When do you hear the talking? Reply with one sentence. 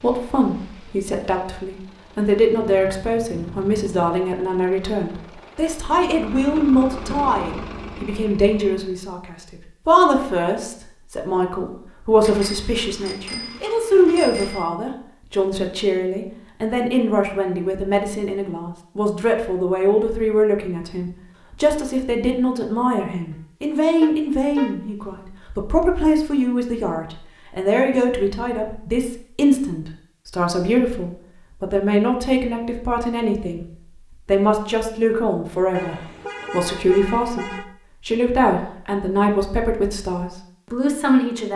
You can hear the talking from 0.0 to 33.6 s and from 34.2 to 41.5 s.